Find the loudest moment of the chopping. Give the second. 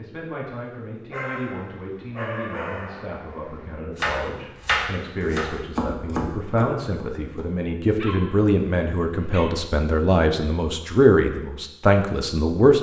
5 s.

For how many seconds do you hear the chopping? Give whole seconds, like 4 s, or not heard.
4 s.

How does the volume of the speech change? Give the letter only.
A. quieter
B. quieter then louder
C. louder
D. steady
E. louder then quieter
C.